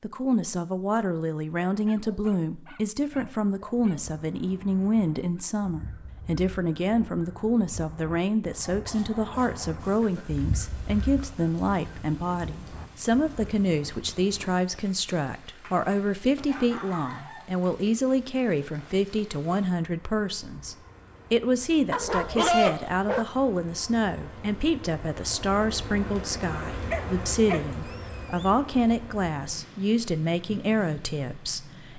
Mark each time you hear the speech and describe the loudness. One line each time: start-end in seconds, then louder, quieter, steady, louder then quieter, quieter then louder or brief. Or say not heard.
0.0-31.9 steady.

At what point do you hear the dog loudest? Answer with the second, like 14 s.
23 s.